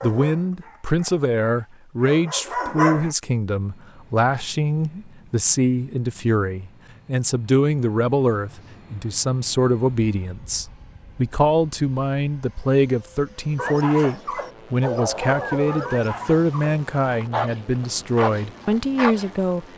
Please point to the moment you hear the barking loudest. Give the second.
3 s.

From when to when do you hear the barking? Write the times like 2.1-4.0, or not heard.
0.0-3.1, 13.6-19.4.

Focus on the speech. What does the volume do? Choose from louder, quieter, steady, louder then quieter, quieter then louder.
steady.